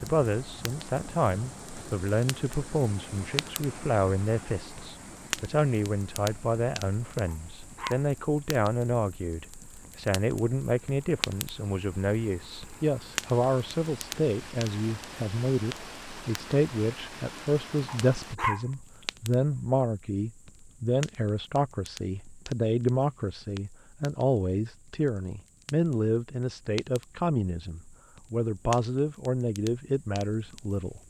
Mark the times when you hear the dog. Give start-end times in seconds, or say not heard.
7.2-8.0, 17.9-18.6.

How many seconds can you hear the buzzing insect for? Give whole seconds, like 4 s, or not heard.
not heard.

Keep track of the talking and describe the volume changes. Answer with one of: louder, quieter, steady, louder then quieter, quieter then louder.
steady.